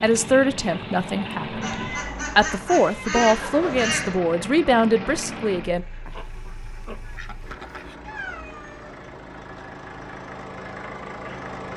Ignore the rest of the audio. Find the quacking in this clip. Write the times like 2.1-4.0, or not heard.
1.6-4.2, 6.0-8.0.